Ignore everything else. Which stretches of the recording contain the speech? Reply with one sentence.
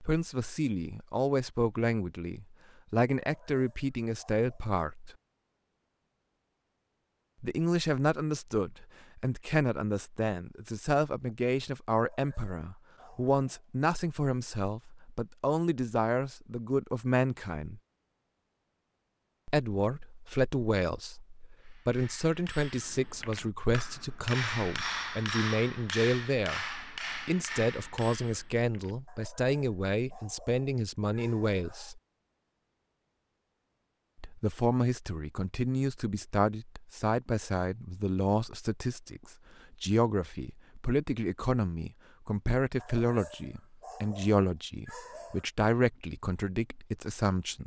The speech can be heard from 0.0 to 5.1 s, from 7.4 to 17.8 s, from 19.4 to 32.0 s and from 34.2 to 47.6 s.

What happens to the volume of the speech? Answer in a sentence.
The volume of the speech stays about the same.